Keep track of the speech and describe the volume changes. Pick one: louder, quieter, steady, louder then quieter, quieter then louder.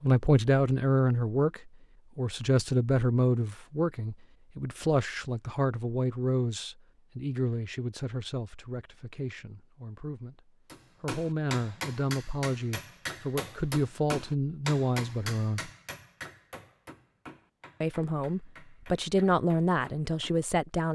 quieter then louder.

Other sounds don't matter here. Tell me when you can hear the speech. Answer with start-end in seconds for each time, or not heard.
0.0-15.7, 17.8-20.9.